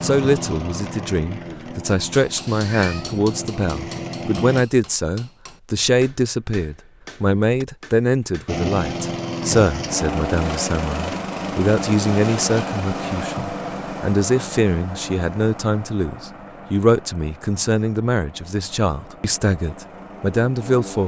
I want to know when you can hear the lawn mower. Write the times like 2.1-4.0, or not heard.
0.0-4.7, 8.4-21.0.